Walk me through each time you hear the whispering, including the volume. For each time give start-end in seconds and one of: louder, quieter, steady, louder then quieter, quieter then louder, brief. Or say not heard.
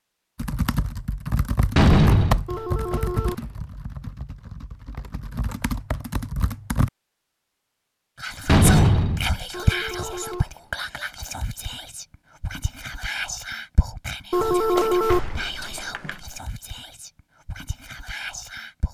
8.2-18.9 quieter.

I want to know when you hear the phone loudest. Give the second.
15 s.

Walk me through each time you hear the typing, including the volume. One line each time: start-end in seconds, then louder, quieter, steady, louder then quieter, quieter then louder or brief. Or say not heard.
0.3-6.9 quieter then louder.